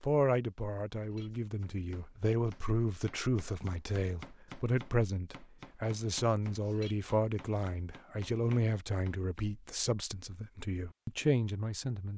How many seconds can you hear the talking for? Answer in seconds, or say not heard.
12 s.